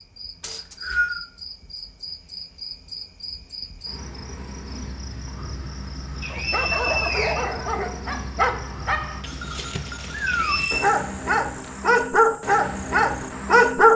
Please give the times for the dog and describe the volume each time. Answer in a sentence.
The dog can be heard from 6.3 to 13.8 s, getting louder.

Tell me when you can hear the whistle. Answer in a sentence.
You can hear the whistle from 0.4 to 1.2 s, from 6.2 to 7.5 s and from 10.2 to 10.8 s.